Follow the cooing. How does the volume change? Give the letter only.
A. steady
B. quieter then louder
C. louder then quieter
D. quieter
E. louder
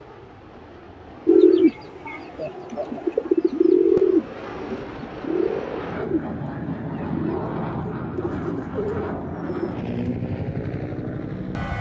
D.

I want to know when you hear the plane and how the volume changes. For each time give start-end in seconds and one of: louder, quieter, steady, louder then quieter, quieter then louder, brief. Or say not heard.
0.0-11.7 louder.